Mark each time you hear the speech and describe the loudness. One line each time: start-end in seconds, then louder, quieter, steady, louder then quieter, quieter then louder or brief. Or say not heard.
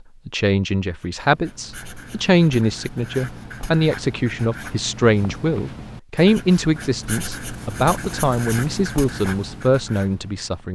0.2-10.6 steady.